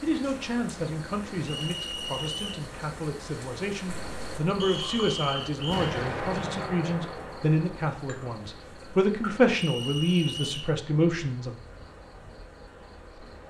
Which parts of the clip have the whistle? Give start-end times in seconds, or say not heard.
1.4-2.6, 4.6-5.9, 9.5-10.8.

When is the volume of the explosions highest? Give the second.
6 s.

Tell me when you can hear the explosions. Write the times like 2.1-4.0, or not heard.
5.7-7.7.